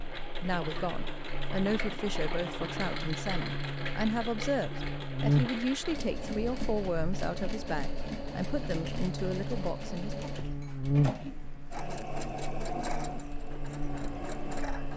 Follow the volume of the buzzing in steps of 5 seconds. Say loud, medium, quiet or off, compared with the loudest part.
medium, loud, loud.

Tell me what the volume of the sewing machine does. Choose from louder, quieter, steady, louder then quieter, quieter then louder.
steady.